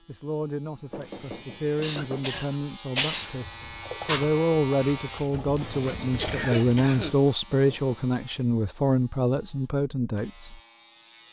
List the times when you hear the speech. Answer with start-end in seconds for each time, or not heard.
0.1-10.6.